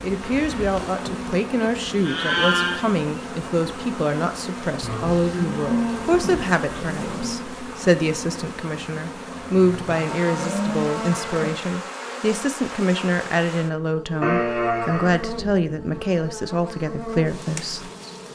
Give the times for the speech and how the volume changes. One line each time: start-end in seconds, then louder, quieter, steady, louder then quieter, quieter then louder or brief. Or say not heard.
0.0-17.9 steady.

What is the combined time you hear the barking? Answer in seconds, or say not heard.
not heard.